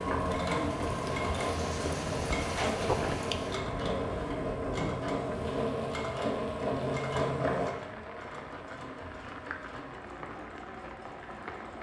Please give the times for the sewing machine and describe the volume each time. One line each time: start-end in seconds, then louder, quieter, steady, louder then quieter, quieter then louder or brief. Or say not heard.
0.0-11.7 quieter.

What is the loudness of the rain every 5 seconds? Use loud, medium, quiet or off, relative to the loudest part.
loud, medium, medium.